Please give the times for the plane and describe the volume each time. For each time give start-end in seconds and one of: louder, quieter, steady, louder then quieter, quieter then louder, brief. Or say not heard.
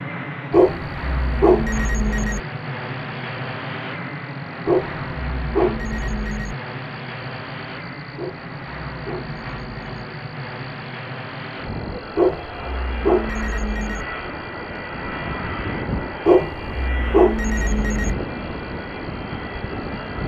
0.0-20.2 steady.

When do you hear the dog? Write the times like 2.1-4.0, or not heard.
0.5-2.4, 4.7-6.5, 8.2-10.1, 12.2-14.1, 16.2-18.1.